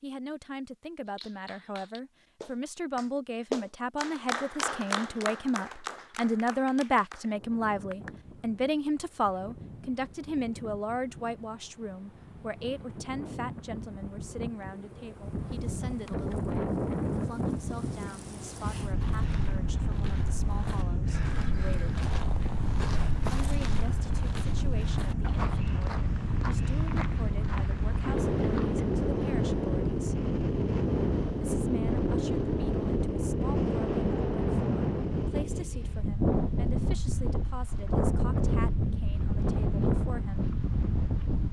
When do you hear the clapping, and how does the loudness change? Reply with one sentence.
You can hear the clapping from 1.1 to 8.1 s, getting louder then quieter.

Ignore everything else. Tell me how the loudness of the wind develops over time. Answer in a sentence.
The volume of the wind goes up.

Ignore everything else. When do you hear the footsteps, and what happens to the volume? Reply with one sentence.
You can hear the footsteps from 19.0 to 28.9 s, getting louder.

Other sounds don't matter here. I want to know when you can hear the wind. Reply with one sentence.
You can hear the wind from 7.2 to 41.4 s.